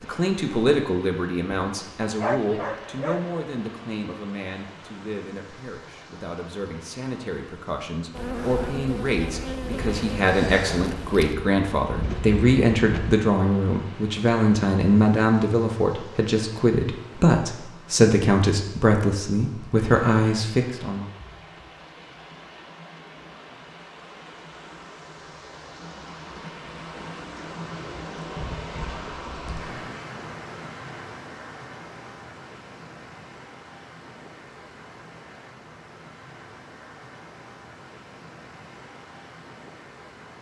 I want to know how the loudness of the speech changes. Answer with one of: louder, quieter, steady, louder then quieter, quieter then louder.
quieter then louder.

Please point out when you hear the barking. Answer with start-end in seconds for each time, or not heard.
2.2-3.5.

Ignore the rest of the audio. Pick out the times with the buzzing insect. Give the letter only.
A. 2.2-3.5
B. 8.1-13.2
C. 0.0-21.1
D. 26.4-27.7
B.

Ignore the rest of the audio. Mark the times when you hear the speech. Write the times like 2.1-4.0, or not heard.
0.0-21.1.